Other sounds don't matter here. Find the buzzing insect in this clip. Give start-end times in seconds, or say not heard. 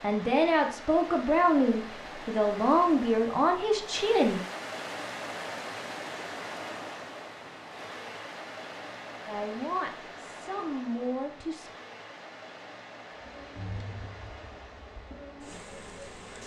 13.2-16.4.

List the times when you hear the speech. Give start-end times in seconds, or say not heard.
0.0-4.4, 9.2-11.7.